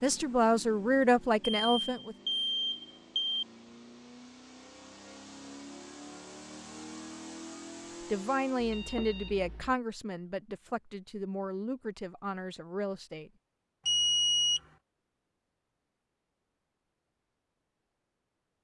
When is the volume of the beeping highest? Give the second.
14 s.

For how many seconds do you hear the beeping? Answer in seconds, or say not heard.
4 s.